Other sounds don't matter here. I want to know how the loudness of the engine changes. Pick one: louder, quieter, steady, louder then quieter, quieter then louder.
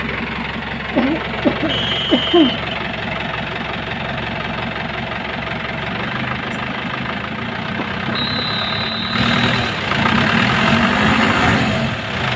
louder.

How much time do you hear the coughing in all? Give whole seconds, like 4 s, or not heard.
2 s.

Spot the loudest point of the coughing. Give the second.
2 s.